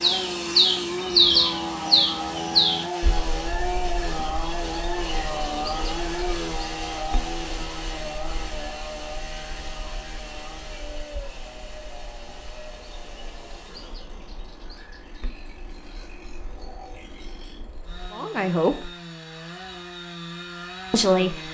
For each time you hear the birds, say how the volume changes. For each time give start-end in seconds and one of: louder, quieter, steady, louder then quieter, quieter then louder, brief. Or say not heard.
0.0-18.1 quieter.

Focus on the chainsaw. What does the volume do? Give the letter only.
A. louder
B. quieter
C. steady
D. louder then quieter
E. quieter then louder
E.